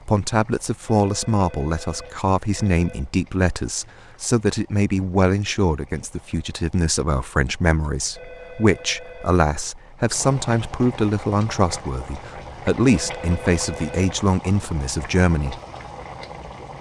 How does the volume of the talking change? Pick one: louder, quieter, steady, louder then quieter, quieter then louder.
steady.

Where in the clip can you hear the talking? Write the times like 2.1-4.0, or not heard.
0.1-15.6.